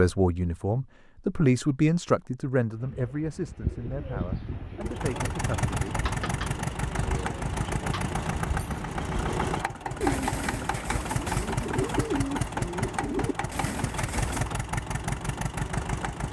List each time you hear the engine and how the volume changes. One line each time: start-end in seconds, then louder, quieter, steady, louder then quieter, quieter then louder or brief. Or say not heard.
4.8-16.2 steady.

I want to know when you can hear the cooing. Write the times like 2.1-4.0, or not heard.
2.8-14.5.